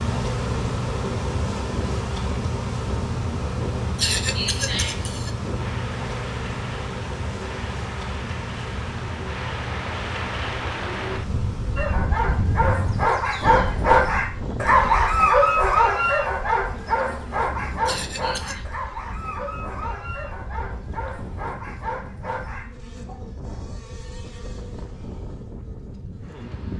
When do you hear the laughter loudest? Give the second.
4 s.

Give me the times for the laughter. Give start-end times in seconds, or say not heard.
4.0-5.3, 17.9-18.6.